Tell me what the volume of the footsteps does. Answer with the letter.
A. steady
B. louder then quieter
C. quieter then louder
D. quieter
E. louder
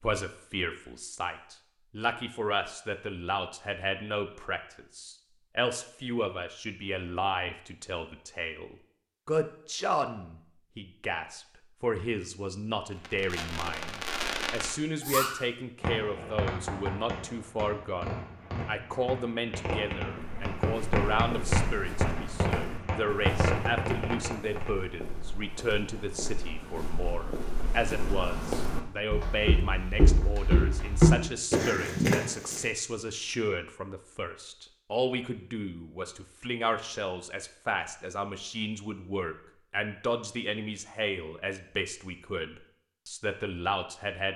E.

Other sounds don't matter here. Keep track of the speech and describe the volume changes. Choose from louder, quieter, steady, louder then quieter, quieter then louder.
steady.